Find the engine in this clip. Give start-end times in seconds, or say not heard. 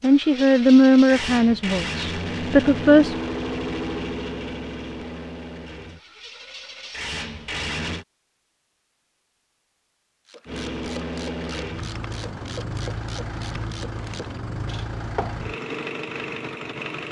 0.0-8.1, 10.4-17.0.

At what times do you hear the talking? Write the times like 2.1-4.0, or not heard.
0.0-3.1.